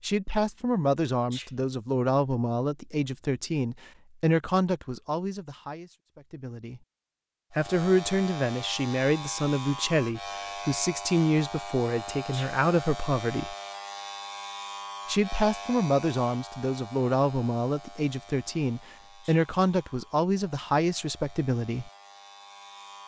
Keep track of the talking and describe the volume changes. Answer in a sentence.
The volume of the talking stays about the same.